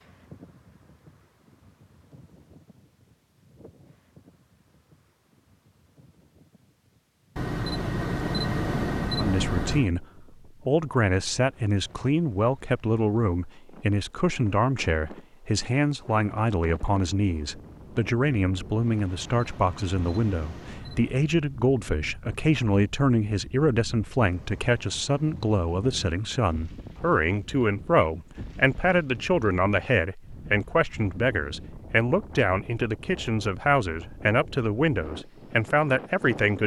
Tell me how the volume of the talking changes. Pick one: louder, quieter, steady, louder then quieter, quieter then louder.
steady.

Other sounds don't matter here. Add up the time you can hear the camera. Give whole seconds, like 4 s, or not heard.
5 s.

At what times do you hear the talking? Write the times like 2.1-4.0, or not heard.
9.2-36.6.